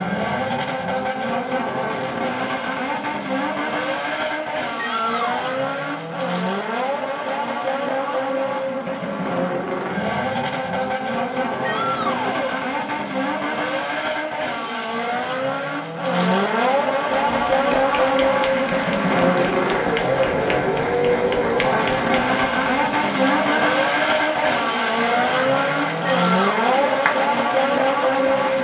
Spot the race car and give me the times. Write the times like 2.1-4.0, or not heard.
0.0-28.5.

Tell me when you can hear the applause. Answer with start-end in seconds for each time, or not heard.
17.2-28.5.